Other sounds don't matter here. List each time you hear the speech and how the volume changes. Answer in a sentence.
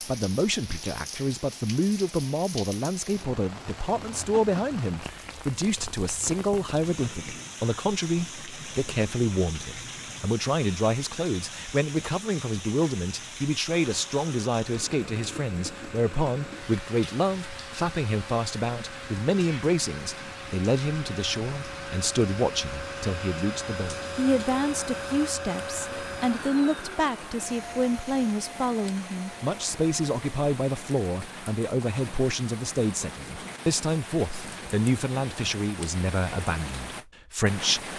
The speech can be heard from 0.0 to 37.9 s, at a steady volume.